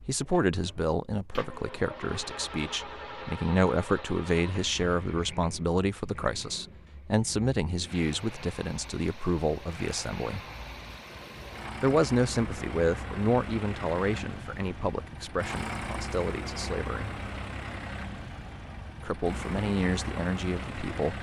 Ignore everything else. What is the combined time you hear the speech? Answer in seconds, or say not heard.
18 s.